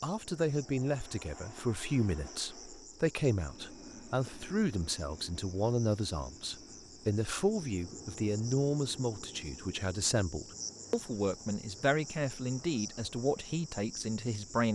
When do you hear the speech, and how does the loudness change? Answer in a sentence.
You can hear the speech from 0.0 to 14.6 s, at a steady volume.